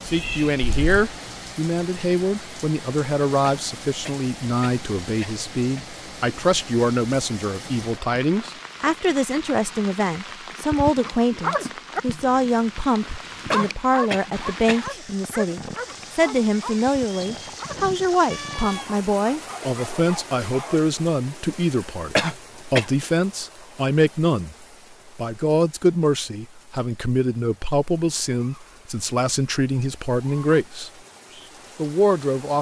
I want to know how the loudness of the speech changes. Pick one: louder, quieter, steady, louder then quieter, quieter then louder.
steady.